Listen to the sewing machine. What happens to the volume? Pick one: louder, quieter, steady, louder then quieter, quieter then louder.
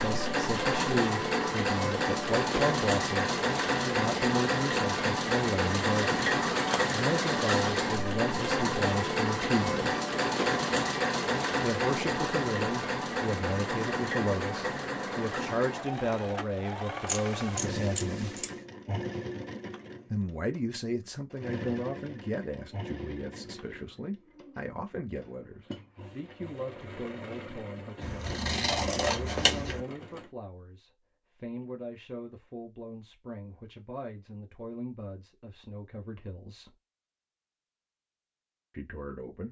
quieter.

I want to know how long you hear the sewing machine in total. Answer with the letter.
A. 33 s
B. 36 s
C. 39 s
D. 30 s
D.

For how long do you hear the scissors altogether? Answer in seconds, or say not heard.
4 s.